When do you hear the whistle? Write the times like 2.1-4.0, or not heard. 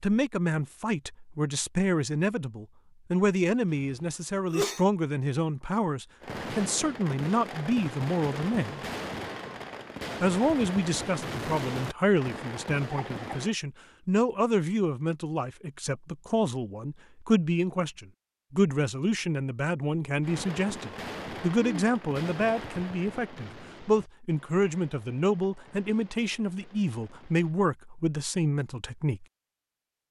not heard.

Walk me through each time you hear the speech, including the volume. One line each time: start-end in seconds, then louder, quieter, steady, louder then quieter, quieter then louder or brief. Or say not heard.
0.0-8.8 steady
10.2-29.2 steady.